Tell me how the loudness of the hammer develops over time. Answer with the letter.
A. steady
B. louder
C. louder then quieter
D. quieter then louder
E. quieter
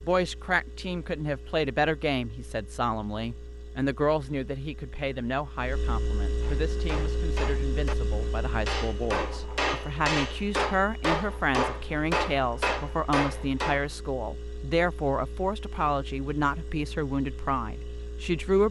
B.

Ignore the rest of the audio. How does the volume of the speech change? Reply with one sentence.
The volume of the speech stays about the same.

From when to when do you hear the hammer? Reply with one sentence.
The hammer can be heard from 6.4 to 13.8 s.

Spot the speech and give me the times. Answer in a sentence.
The speech can be heard from 0.1 to 18.6 s.